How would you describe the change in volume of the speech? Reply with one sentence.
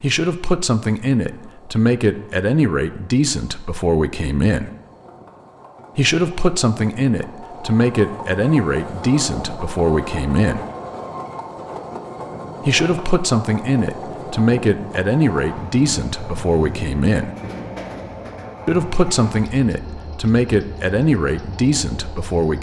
The loudness of the speech stays about the same.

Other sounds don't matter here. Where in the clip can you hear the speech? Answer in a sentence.
The speech can be heard from 0.0 to 4.7 s, from 6.0 to 10.7 s, from 12.7 to 17.3 s and from 18.6 to 22.5 s.